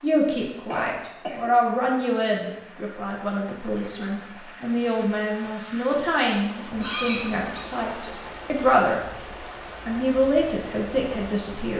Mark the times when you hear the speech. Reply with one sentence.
You can hear the speech from 0.0 to 9.1 s and from 9.8 to 11.7 s.